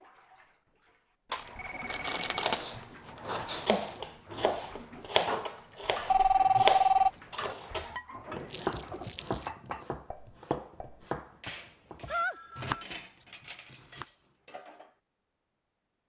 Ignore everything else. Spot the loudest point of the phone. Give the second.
7 s.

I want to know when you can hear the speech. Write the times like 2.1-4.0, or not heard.
not heard.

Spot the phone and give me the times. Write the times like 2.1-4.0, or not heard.
1.3-2.5, 6.1-7.1, 12.1-12.8.